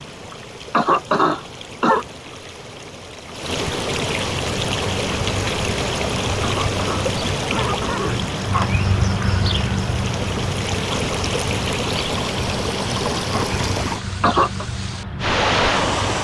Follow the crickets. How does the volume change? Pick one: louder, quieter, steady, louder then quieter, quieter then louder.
louder then quieter.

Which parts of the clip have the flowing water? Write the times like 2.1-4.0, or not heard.
0.0-16.1.